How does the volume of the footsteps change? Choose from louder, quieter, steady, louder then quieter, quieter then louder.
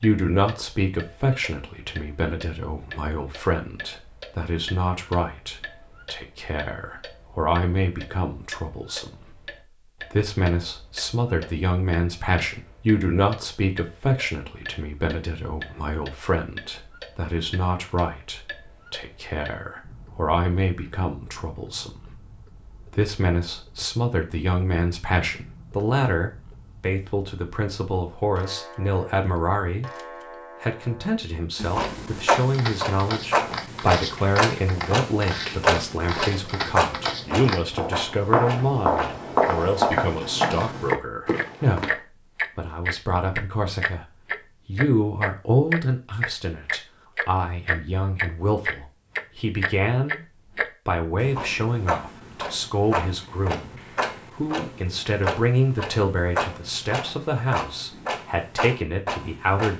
louder.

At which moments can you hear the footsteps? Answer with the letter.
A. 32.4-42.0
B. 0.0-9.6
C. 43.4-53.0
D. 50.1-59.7
A.